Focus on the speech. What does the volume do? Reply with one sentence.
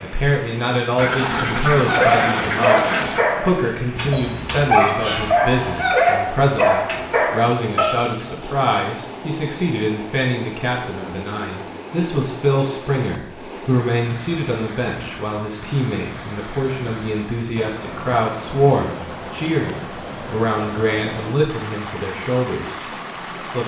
The loudness of the speech stays about the same.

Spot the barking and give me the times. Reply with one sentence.
The barking can be heard from 1.9 to 8.5 s.